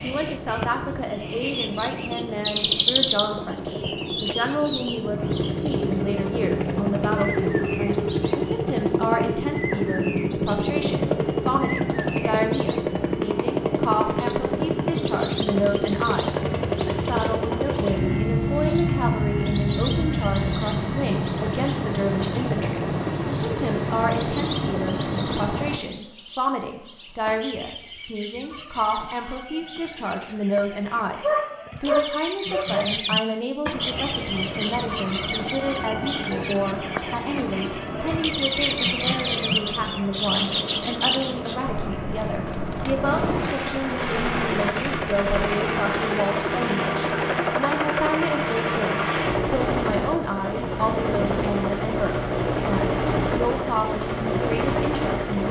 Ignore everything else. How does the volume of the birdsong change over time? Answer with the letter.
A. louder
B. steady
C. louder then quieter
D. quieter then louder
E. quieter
D.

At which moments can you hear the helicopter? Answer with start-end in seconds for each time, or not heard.
0.0-25.8, 33.7-55.4.